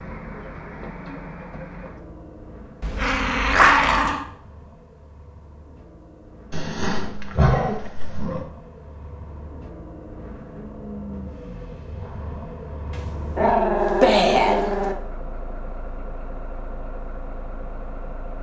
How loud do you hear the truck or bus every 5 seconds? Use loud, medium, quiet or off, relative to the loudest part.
loud, medium, loud, loud.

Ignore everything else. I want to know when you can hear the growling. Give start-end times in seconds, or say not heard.
2.8-4.2, 6.5-8.4, 13.3-14.9.